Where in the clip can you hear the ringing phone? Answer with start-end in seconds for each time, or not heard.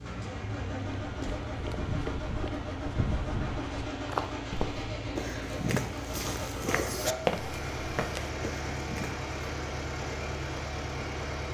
not heard.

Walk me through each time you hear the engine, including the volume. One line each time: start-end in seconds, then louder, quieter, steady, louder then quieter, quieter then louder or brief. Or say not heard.
0.0-11.4 steady.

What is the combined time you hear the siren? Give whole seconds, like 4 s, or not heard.
not heard.